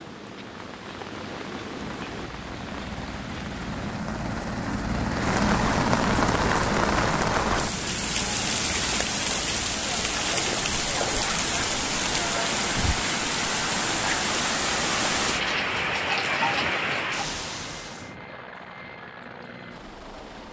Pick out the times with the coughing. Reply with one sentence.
You can't hear the coughing here.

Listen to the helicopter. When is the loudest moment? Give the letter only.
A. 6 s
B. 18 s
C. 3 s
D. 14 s
A.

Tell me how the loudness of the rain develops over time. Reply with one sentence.
The volume of the rain goes up.